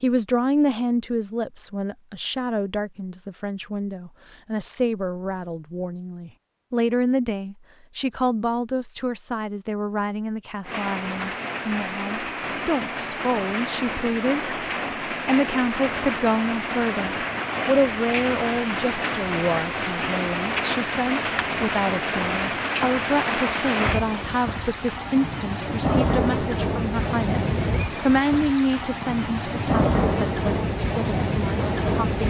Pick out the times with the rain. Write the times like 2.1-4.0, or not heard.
10.7-32.2.